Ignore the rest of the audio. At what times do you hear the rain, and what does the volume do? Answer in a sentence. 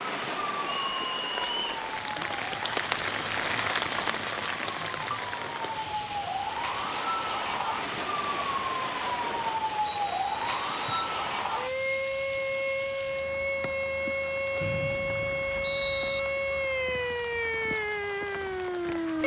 The rain can be heard from 0.0 to 19.2 s, getting quieter.